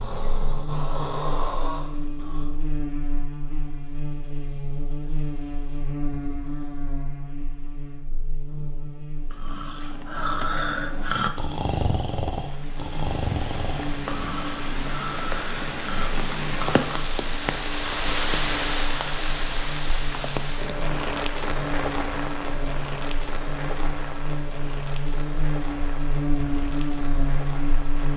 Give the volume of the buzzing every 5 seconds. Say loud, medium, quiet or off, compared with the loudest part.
medium, medium, medium, medium, medium, loud.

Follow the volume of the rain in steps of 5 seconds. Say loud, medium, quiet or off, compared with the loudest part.
off, off, medium, loud, loud, medium.